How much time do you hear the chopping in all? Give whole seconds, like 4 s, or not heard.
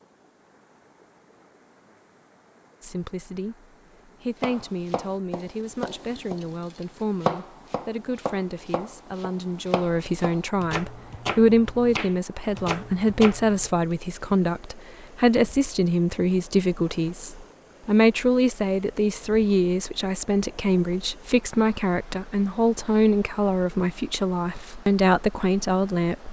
9 s.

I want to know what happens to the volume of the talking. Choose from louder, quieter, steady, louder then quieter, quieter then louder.
louder.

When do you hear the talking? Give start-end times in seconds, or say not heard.
2.8-26.2.